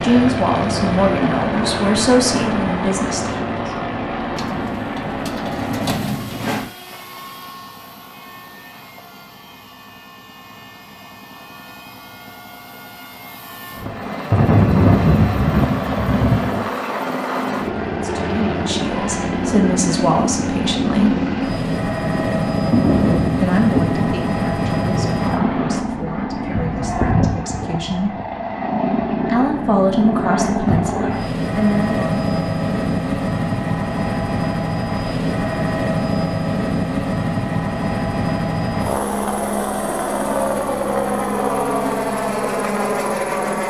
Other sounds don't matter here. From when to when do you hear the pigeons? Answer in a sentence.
The pigeons can be heard from 4.3 to 6.8 s.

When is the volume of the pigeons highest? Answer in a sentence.
The volume of the pigeons peaks at 6 seconds.